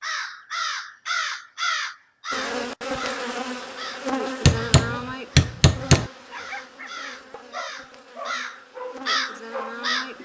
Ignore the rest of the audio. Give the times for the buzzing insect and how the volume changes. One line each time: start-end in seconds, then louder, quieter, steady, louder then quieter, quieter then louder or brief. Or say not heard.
2.3-10.1 quieter then louder.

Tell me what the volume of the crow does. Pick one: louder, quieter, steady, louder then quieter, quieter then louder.
quieter then louder.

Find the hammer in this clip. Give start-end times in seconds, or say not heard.
4.5-6.1.